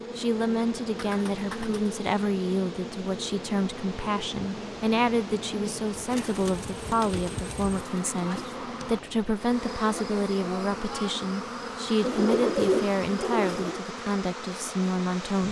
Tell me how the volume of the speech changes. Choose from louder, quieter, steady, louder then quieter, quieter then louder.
steady.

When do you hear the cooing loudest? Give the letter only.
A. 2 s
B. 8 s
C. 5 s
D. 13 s
D.